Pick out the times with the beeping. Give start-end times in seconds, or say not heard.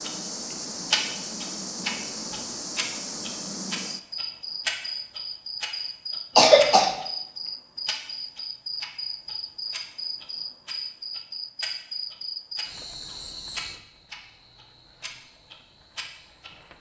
not heard.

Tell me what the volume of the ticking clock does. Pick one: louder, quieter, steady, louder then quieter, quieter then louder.
quieter.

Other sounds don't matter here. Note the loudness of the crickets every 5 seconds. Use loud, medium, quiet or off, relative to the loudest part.
loud, loud, loud, quiet.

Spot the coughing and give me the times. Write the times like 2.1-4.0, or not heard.
6.3-7.0.